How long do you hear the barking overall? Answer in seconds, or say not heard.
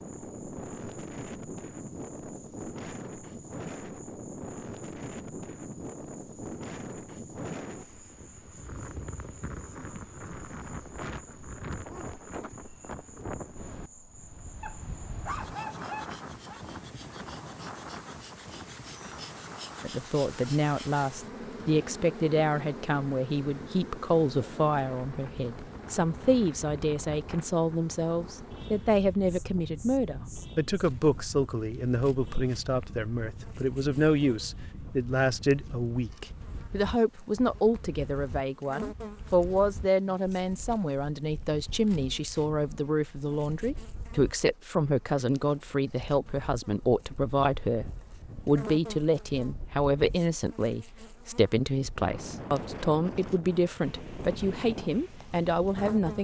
2 s.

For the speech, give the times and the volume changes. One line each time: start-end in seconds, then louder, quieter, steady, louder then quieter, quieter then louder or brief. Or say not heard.
19.8-56.1 steady.